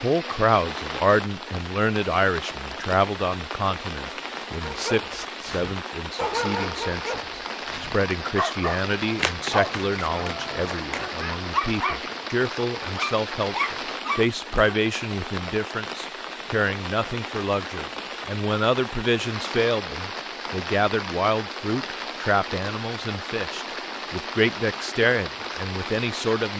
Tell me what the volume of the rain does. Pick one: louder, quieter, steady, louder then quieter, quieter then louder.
steady.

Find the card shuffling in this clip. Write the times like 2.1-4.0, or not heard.
9.2-11.1.